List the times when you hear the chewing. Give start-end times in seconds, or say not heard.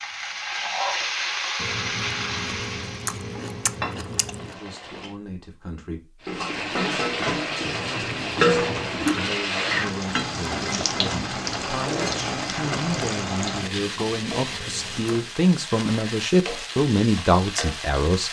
1.6-4.5, 7.6-9.3, 13.6-15.3.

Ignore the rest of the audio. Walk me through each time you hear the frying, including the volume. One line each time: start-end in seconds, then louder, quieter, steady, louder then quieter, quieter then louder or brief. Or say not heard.
0.0-5.2 quieter
6.2-18.2 quieter.